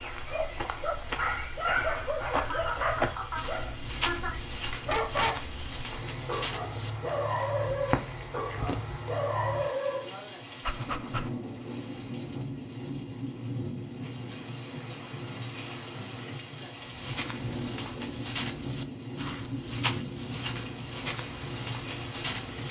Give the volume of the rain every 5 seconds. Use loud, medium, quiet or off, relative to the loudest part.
medium, loud, loud, loud, loud.